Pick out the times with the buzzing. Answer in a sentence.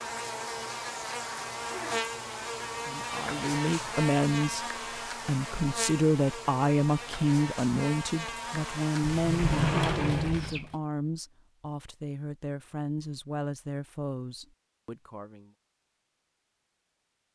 You can hear the buzzing from 0.0 to 10.3 s.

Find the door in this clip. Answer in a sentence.
The door can be heard from 9.1 to 10.8 s.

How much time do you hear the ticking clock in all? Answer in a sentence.
You can't hear the ticking clock here.